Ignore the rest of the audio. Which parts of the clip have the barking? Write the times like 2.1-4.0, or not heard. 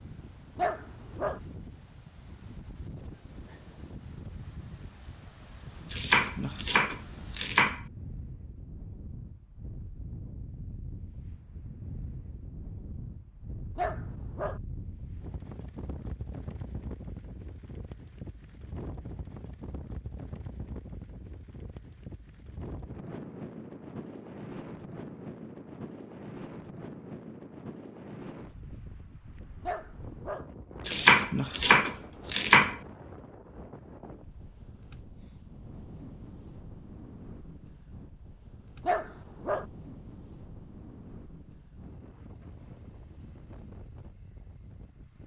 0.6-1.4, 13.8-14.6, 29.6-30.4, 38.8-39.6.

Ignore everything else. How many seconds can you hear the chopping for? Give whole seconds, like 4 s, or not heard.
4 s.